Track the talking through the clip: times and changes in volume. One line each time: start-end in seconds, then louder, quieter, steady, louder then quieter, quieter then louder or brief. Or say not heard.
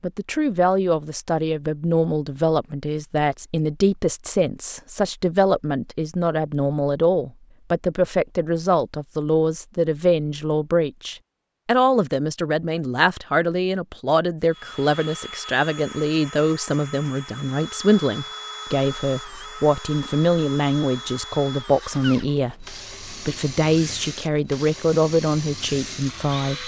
0.0-26.6 steady.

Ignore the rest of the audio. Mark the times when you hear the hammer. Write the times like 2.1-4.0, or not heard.
not heard.